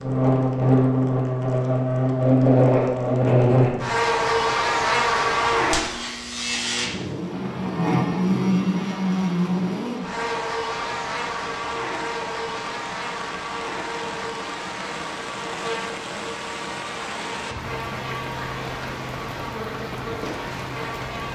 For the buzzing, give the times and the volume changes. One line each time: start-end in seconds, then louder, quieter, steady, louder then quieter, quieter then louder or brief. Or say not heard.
0.0-21.2 quieter.